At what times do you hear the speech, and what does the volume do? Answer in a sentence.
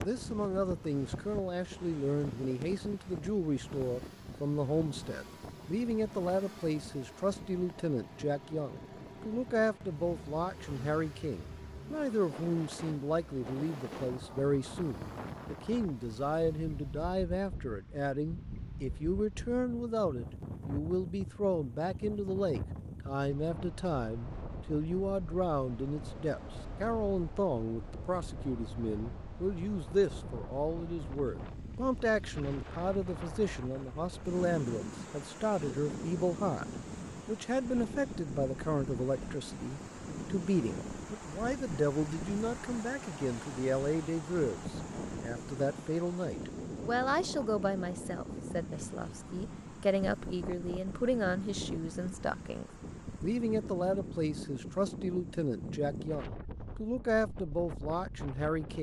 You can hear the speech from 0.0 to 36.6 s, at a steady volume; and from 37.2 to 58.7 s, at a steady volume.